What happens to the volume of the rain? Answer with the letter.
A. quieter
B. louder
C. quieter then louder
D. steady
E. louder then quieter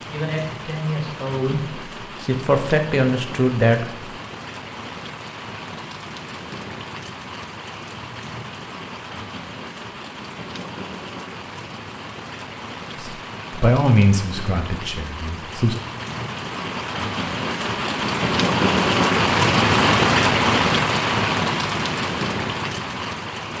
B.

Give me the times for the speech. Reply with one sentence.
You can hear the speech from 0.1 to 4.0 s and from 12.9 to 15.8 s.